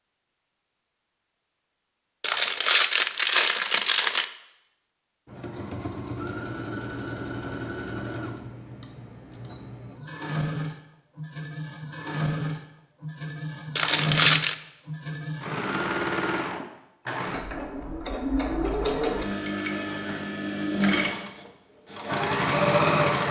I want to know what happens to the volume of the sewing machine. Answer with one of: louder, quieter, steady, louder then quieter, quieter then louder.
louder.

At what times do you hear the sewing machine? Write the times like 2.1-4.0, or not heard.
5.2-23.2.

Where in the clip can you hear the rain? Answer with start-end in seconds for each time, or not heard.
not heard.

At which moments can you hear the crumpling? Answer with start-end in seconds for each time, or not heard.
2.2-4.2, 13.8-14.6.